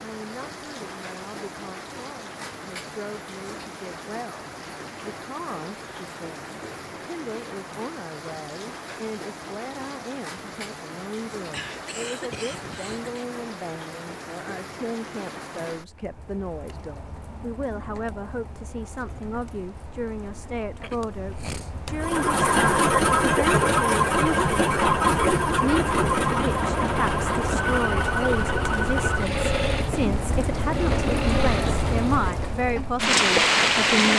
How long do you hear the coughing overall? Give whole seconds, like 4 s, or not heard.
3 s.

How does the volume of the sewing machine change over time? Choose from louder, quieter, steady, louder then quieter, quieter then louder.
quieter.